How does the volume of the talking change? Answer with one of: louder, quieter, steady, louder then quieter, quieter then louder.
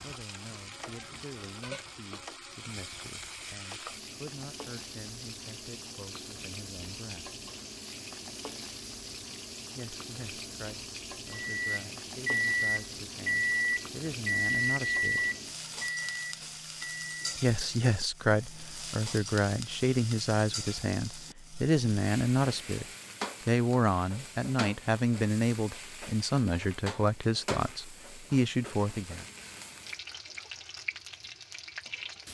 louder.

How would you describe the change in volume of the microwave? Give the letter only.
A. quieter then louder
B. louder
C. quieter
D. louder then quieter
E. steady
C.